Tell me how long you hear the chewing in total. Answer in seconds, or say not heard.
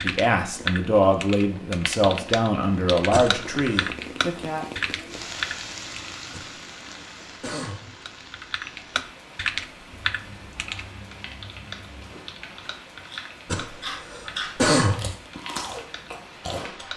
4 s.